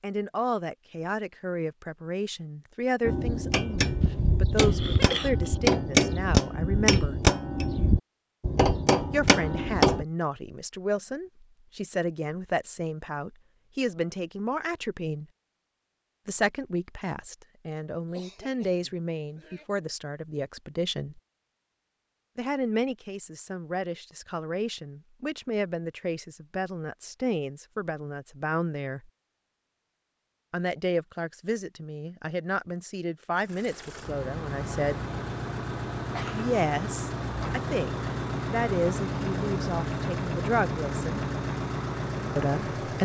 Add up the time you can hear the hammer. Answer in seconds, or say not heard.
7 s.